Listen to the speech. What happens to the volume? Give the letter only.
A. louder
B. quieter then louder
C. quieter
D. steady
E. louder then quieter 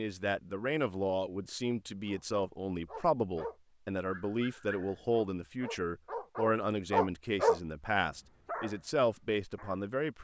D.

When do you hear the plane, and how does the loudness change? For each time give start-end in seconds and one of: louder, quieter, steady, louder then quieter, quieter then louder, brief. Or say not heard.
not heard.